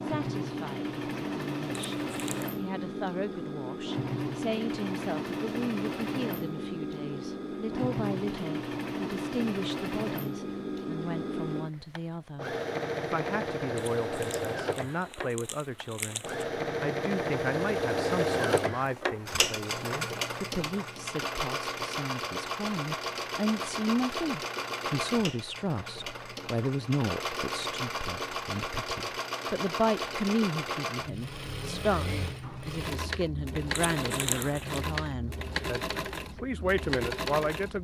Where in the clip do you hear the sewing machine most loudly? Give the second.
18 s.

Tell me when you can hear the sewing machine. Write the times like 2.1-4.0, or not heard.
0.0-37.7.